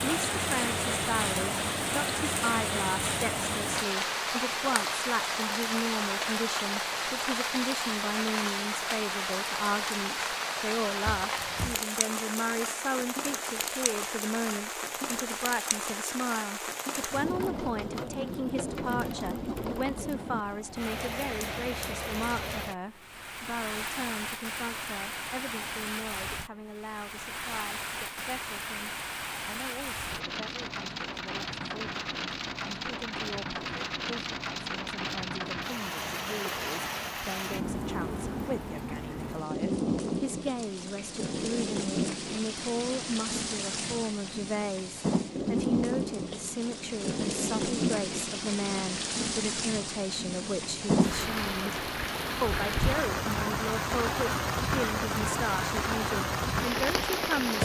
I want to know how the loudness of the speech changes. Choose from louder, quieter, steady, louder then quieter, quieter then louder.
quieter then louder.